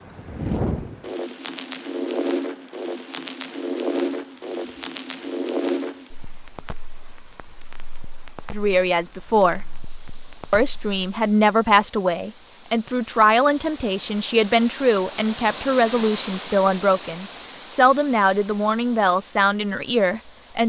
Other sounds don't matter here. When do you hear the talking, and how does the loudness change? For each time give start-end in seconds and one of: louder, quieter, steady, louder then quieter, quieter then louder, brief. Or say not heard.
8.5-9.6 brief
10.5-20.6 steady.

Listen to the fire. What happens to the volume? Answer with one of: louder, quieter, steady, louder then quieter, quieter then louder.
quieter.